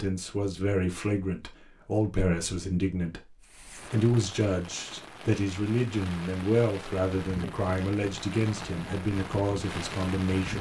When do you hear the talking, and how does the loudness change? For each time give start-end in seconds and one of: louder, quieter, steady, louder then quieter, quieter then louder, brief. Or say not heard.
0.0-10.5 steady.